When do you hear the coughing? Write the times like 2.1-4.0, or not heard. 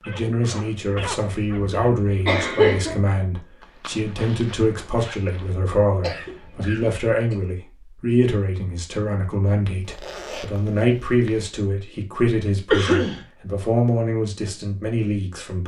0.9-3.0, 6.0-7.3, 12.7-13.2.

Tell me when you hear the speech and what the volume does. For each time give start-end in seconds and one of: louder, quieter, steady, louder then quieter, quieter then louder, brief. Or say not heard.
0.1-15.6 steady.